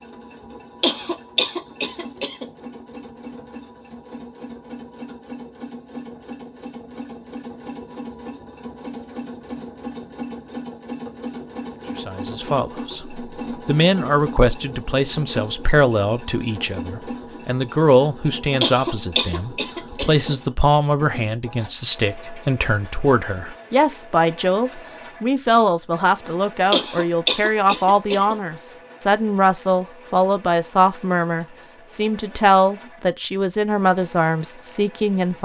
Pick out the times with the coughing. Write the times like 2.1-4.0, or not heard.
0.8-2.5, 18.6-20.2, 26.7-28.4.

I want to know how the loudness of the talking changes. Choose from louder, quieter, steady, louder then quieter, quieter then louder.
steady.